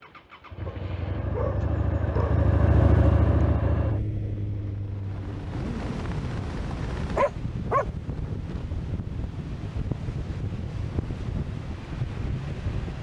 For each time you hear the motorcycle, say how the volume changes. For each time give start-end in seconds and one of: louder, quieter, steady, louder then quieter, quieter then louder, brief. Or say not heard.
0.0-12.9 quieter.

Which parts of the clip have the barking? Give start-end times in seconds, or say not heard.
0.7-2.4, 7.2-8.3.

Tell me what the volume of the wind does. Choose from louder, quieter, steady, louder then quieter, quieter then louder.
steady.